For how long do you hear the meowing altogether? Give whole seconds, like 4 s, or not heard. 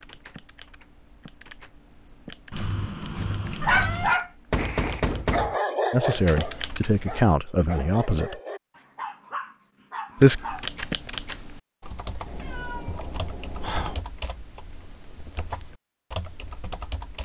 5 s.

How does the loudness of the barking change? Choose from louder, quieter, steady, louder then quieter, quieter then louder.
quieter.